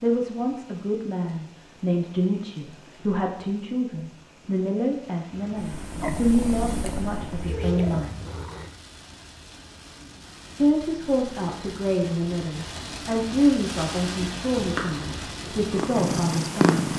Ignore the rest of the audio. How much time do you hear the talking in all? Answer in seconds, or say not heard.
14 s.